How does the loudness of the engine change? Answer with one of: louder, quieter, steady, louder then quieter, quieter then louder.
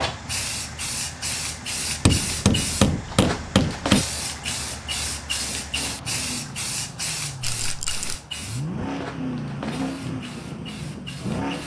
louder.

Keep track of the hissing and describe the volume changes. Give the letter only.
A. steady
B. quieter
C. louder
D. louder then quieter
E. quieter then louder
B.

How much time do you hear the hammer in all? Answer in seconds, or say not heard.
2 s.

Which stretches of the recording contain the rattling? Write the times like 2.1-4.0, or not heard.
7.4-8.2.